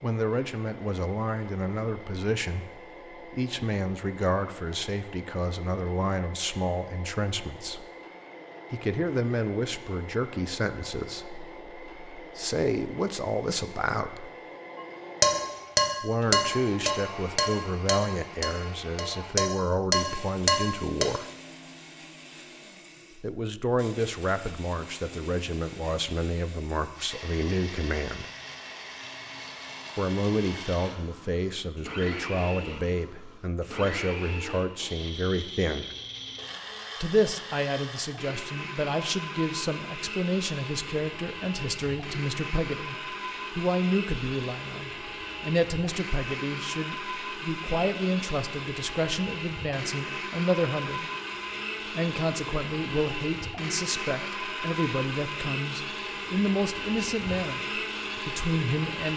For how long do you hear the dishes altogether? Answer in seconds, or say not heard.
6 s.